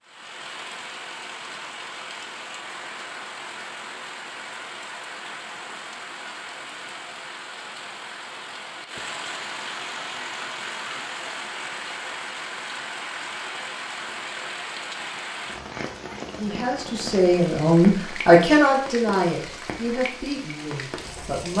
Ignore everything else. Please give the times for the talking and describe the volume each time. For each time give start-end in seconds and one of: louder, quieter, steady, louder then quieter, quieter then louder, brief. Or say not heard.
16.4-21.5 louder then quieter.